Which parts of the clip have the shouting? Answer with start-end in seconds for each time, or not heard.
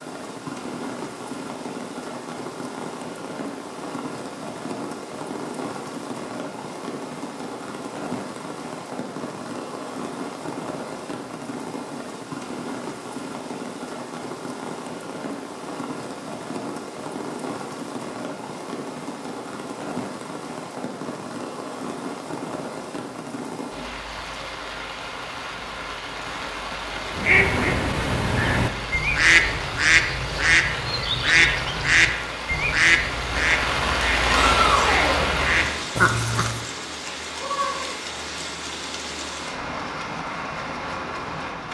34.2-35.2.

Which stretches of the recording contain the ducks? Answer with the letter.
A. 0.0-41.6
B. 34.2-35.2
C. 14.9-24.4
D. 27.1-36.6
D.